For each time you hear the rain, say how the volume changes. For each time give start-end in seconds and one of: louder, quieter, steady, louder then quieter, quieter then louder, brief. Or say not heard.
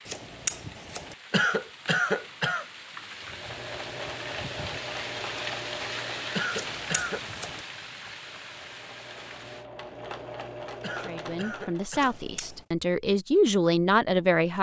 0.0-9.7 louder then quieter.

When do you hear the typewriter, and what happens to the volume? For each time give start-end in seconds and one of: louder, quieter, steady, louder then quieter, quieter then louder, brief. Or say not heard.
not heard.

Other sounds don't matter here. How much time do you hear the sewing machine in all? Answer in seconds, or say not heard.
9 s.